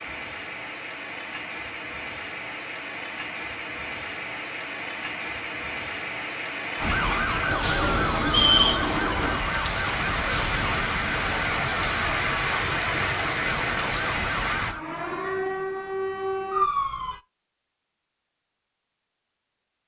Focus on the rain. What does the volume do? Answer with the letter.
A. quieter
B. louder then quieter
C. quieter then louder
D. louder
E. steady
D.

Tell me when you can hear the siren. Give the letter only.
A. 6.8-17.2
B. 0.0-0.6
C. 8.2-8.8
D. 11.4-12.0
A.